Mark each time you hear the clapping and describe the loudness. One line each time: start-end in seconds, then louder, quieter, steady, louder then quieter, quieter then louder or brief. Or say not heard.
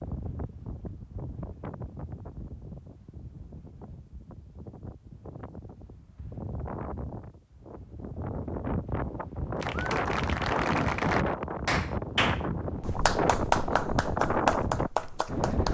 9.6-15.7 steady.